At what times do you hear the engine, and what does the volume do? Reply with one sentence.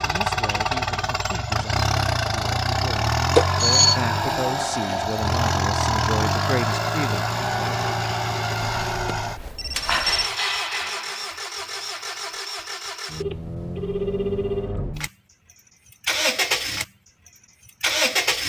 You can hear the engine from 0.0 to 18.4 s, getting quieter then louder.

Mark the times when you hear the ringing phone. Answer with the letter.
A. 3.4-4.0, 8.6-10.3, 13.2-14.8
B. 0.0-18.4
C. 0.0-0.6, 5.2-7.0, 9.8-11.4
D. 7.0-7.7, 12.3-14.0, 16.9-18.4
A.